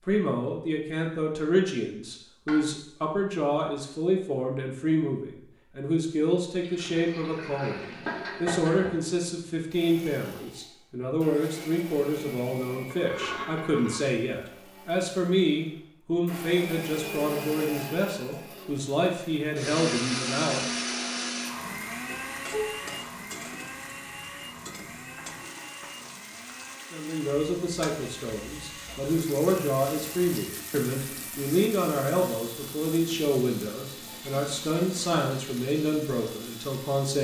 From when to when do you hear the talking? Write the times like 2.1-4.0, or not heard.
0.0-7.8, 8.4-20.9, 26.9-37.2.